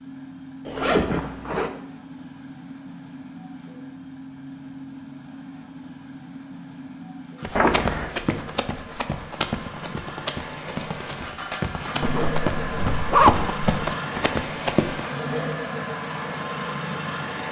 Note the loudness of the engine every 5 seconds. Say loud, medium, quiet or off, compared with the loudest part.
medium, medium, loud, loud.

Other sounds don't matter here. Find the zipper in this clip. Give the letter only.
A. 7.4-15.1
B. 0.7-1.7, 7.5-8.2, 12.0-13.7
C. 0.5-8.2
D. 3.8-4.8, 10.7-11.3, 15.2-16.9
B.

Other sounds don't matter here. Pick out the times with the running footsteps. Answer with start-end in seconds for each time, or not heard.
7.4-15.1.